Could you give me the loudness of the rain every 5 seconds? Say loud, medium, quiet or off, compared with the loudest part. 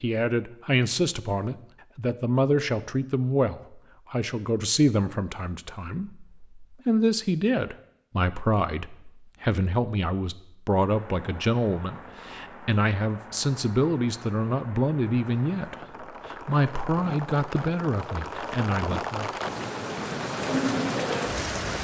off, off, quiet, medium, loud.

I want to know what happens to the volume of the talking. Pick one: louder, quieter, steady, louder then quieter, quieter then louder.
steady.